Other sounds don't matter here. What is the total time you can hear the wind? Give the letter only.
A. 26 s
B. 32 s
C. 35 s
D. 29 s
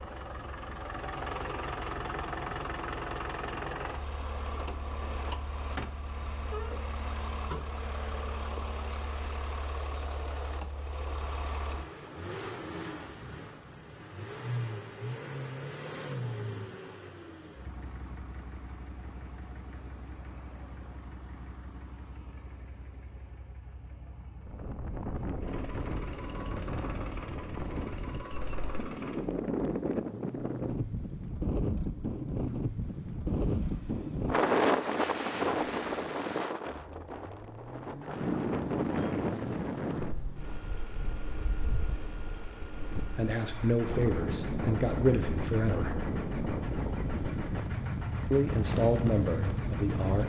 A.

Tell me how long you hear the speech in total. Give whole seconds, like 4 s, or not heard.
5 s.